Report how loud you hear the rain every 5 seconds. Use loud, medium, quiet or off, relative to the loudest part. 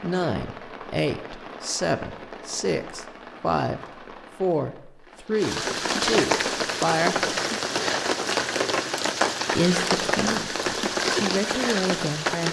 quiet, loud, loud.